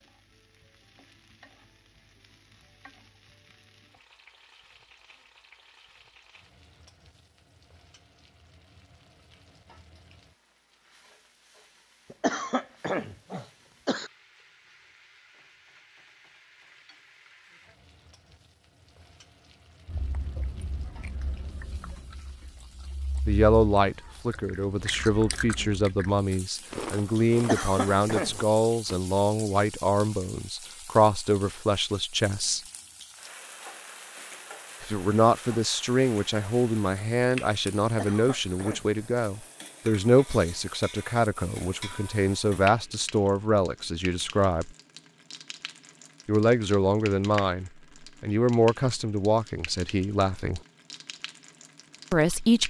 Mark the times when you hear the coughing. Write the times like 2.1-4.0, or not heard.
12.1-14.1, 27.4-28.4, 37.9-38.9.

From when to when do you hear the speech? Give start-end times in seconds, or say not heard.
23.2-32.6, 34.8-44.7, 46.2-50.6, 52.1-52.6.